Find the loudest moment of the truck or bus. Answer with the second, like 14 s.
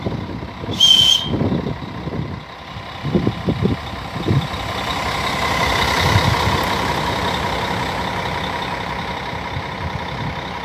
6 s.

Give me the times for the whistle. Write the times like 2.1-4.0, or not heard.
0.7-1.3.